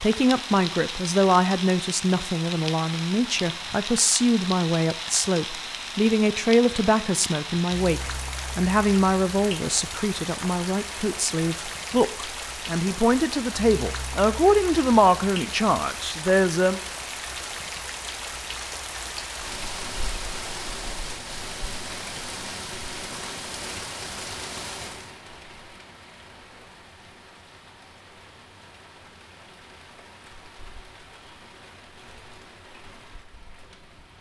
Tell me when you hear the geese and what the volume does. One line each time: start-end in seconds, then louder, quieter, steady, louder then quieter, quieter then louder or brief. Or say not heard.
not heard.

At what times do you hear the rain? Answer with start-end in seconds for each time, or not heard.
0.0-34.1.